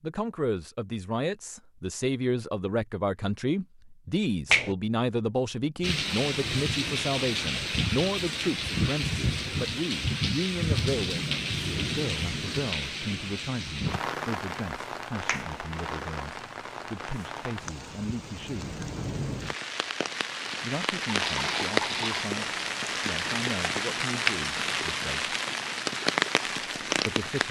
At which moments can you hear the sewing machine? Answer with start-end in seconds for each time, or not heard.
not heard.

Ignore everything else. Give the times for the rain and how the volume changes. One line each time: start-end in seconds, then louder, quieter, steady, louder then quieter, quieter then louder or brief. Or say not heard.
5.8-27.4 quieter then louder.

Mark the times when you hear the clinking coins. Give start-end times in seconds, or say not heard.
21.0-22.3.